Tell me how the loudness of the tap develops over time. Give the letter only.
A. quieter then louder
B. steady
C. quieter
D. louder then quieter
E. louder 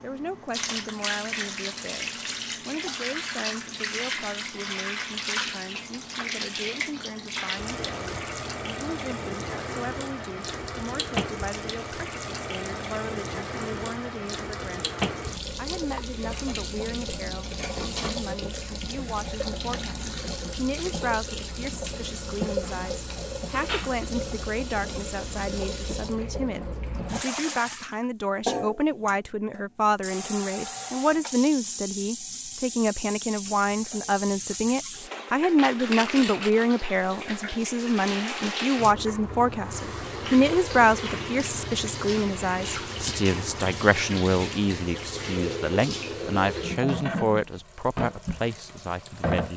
B.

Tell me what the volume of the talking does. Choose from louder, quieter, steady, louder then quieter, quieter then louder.
louder.